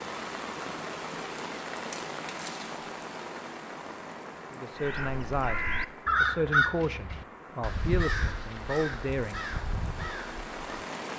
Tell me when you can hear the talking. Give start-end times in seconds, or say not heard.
4.5-9.5.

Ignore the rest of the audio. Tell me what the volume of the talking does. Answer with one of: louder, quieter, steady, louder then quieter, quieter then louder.
steady.